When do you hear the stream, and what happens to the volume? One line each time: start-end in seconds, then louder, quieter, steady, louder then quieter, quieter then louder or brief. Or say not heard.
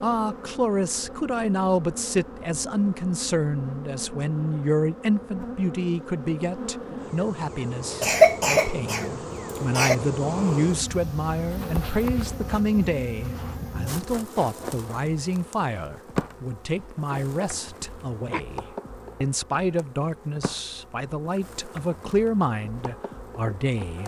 not heard.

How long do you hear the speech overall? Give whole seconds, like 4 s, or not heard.
24 s.